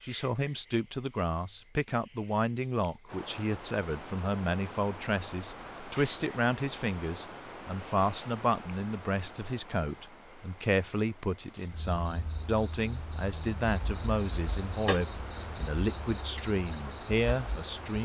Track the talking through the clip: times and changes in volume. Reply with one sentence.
The talking can be heard from 0.0 to 18.0 s, at a steady volume.